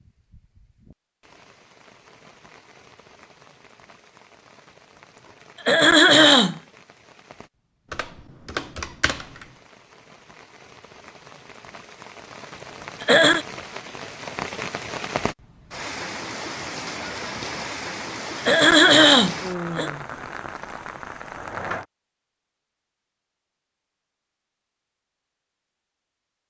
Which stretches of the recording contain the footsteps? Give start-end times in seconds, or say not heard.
not heard.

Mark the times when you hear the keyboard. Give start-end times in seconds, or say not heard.
7.9-9.5.